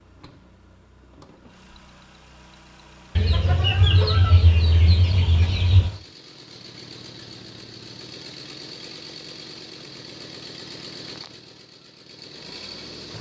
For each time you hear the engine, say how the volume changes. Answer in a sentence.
You can hear the engine from 0.0 to 13.1 s, getting louder.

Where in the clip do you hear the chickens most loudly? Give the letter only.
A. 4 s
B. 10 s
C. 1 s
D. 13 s
A.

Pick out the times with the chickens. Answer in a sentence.
The chickens can be heard from 3.1 to 5.9 s.